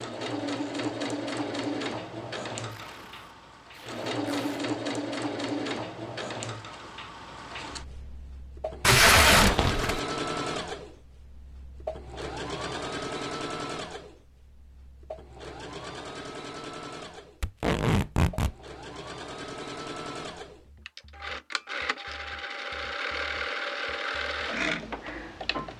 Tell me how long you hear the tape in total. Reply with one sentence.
You can hear the tape for 4 seconds altogether.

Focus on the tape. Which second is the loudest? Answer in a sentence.
The loudest moment of the tape is at 9 seconds.